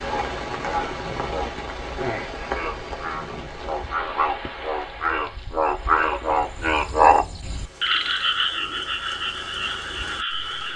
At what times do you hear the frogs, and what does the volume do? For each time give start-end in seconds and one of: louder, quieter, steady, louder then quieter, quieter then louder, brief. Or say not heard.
0.0-10.7 louder then quieter.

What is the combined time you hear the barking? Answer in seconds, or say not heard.
not heard.